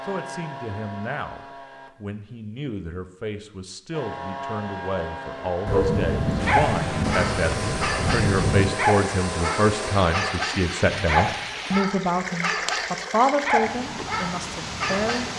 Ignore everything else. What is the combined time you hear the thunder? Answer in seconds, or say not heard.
3 s.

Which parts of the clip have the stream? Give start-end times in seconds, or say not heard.
6.3-15.3.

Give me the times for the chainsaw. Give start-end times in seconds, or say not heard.
0.0-1.9, 3.9-10.3.